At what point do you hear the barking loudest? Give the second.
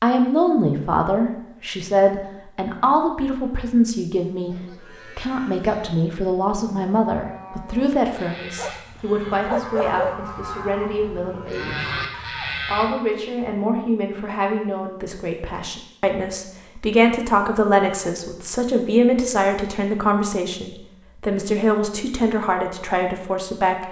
10 s.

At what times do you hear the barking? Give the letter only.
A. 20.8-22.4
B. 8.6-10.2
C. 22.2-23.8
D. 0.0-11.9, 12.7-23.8
B.